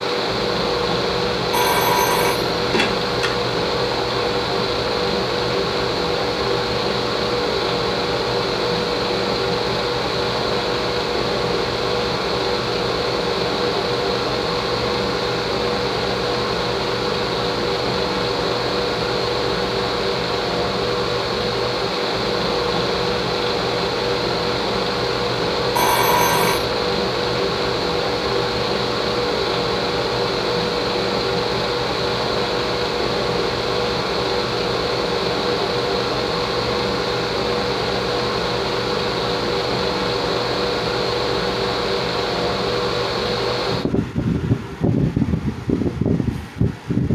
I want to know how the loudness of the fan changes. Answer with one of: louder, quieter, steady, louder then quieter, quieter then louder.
steady.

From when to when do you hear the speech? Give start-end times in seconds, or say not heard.
not heard.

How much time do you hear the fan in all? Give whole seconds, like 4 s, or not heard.
47 s.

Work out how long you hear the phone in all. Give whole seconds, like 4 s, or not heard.
3 s.